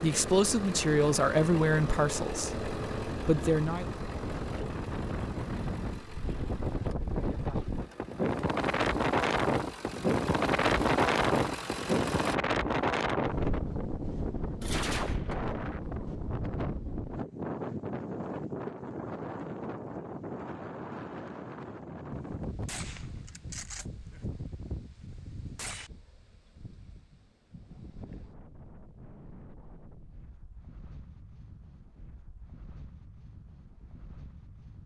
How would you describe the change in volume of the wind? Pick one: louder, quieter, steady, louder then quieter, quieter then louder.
louder then quieter.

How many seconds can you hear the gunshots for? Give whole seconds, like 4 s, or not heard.
5 s.